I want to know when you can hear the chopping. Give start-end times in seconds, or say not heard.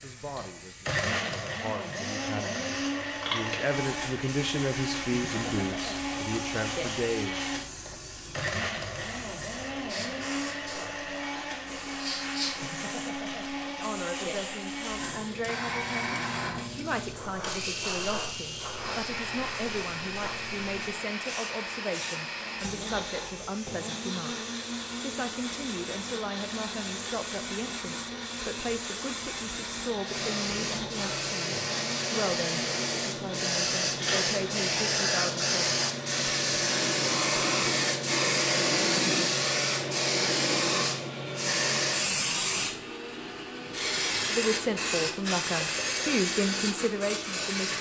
not heard.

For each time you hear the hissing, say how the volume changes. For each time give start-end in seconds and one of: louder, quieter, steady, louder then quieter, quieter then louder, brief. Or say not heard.
0.0-47.7 louder.